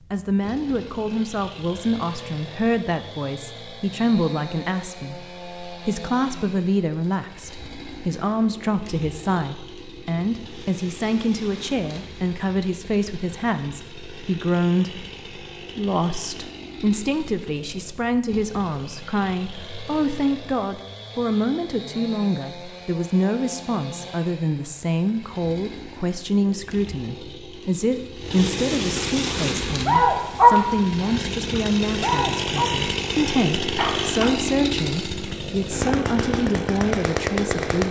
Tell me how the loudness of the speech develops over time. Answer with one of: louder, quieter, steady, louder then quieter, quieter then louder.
steady.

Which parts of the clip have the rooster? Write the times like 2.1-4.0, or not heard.
not heard.